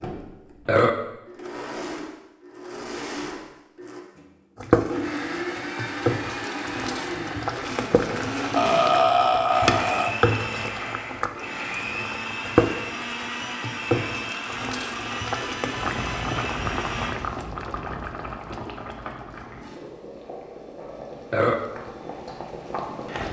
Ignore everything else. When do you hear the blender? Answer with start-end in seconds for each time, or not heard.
0.0-17.1.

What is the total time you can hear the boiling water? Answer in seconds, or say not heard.
19 s.